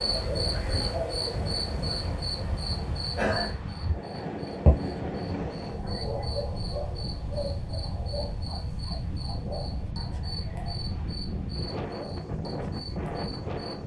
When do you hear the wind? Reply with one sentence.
The wind can be heard from 0.0 to 13.8 s.